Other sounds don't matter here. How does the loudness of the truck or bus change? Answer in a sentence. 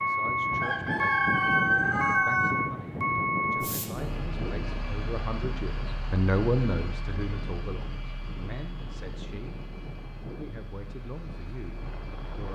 The loudness of the truck or bus goes down.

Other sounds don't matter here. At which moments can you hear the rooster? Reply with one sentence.
You can hear the rooster from 0.6 to 2.5 s.